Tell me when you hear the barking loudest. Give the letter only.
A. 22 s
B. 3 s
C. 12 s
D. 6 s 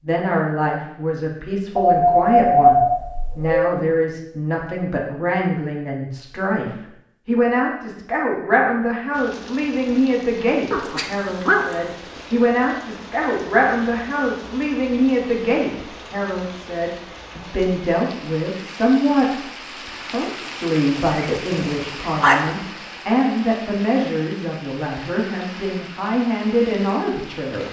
B.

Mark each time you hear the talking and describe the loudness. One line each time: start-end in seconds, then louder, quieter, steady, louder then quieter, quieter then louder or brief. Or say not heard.
0.0-27.6 steady.